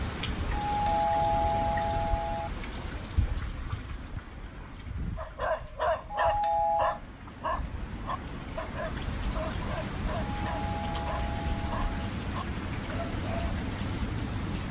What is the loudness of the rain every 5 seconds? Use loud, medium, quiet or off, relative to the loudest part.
loud, medium, loud.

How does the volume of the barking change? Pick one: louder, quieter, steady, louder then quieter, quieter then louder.
quieter.